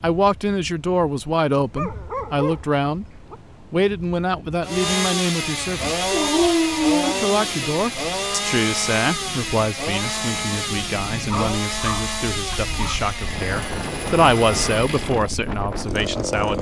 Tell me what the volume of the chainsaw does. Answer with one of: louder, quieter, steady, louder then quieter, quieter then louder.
quieter.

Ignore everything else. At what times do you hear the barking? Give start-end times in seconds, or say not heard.
1.8-3.4, 6.1-7.8, 11.3-13.0.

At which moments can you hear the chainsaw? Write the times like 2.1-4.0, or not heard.
4.6-16.5.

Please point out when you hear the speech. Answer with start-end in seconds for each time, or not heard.
0.0-3.0, 3.7-6.0, 7.0-16.5.